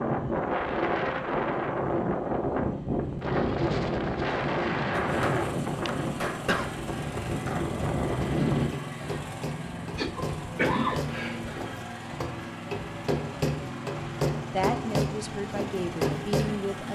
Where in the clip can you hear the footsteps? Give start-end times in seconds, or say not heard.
not heard.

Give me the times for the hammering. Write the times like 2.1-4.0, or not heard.
4.9-16.5.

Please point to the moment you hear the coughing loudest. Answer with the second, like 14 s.
11 s.